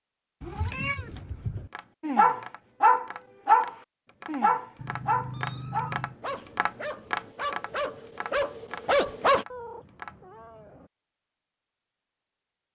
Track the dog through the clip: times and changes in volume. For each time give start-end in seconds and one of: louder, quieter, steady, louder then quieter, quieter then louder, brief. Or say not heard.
2.0-9.4 quieter then louder.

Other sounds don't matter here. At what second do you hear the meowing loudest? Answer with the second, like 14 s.
1 s.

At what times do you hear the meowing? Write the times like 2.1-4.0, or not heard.
0.4-1.7, 4.8-6.2, 9.5-10.9.